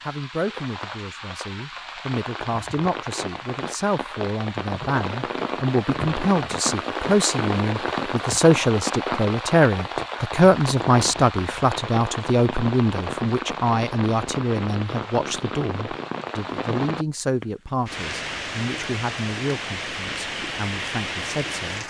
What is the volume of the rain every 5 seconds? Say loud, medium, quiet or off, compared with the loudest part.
medium, loud, loud, loud, loud.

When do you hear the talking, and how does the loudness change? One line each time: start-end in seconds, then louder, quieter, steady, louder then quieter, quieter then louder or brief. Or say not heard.
0.0-21.8 louder then quieter.